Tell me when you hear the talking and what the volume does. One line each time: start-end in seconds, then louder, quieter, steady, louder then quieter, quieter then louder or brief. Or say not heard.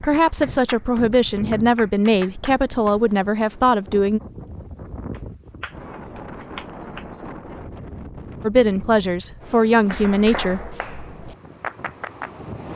0.0-4.2 steady
8.4-10.6 brief.